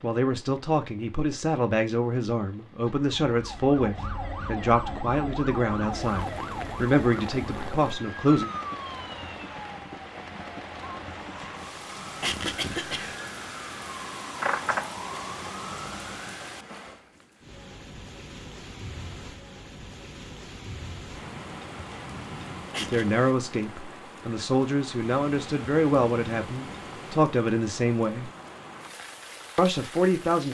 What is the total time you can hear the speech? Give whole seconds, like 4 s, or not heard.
15 s.